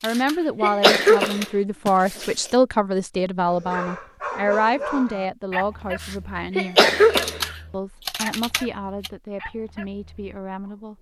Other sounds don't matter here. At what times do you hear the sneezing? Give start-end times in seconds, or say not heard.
0.1-2.3, 6.0-7.4.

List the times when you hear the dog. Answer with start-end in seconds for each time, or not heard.
3.5-10.7.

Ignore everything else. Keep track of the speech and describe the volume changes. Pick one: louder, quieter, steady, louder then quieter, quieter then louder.
quieter.